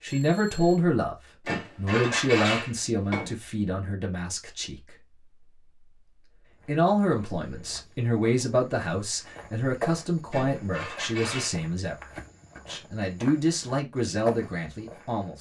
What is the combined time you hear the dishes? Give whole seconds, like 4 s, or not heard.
3 s.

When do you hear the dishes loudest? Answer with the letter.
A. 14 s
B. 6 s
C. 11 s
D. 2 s
D.